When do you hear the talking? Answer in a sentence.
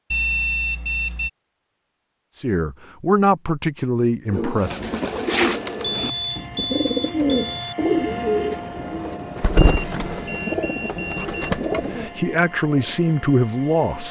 You can hear the talking from 2.4 to 4.9 s and from 11.7 to 14.0 s.